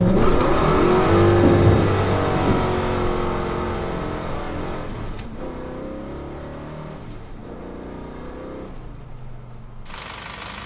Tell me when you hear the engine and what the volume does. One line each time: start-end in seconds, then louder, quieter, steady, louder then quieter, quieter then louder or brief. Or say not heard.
0.0-10.6 quieter.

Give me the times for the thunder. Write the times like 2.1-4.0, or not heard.
1.4-2.7.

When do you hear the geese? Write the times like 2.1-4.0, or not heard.
not heard.